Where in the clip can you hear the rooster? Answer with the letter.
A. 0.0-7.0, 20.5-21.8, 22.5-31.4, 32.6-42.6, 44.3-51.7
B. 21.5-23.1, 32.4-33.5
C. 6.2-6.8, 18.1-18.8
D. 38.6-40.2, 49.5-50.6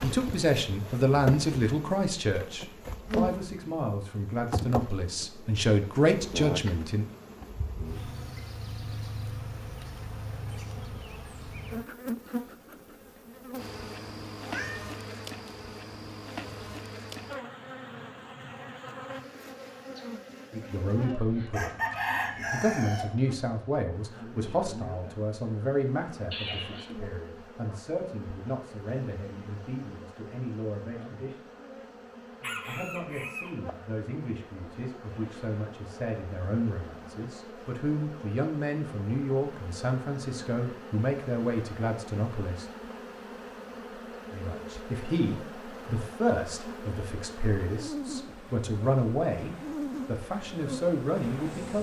B.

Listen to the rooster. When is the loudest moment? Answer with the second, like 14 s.
22 s.